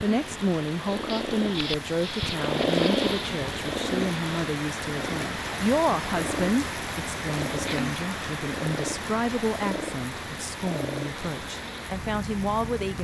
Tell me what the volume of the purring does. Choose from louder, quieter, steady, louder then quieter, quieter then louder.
quieter.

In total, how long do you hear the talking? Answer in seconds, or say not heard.
13 s.